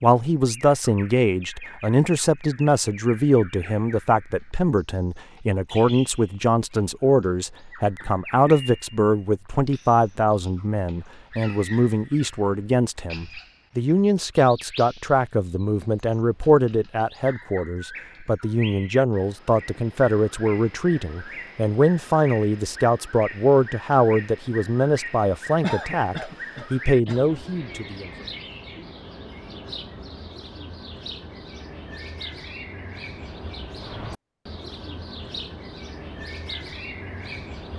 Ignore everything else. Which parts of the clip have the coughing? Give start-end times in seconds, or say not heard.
25.6-27.2.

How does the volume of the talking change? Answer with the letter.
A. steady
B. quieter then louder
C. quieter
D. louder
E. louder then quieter
A.